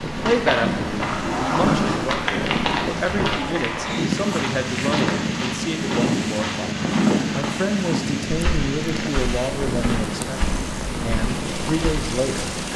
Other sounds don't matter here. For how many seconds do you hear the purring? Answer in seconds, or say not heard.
13 s.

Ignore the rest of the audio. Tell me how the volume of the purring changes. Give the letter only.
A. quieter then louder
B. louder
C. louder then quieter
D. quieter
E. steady
E.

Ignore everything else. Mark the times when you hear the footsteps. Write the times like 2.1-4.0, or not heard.
0.0-12.1.